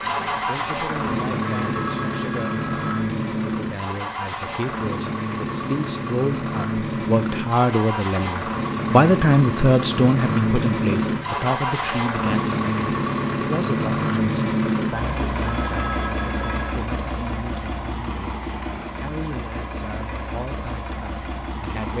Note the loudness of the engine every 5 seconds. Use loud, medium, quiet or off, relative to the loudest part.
loud, loud, loud, medium, medium.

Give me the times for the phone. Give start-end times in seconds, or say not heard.
1.5-3.1, 15.4-16.8.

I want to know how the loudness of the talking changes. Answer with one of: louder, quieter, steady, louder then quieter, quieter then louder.
louder then quieter.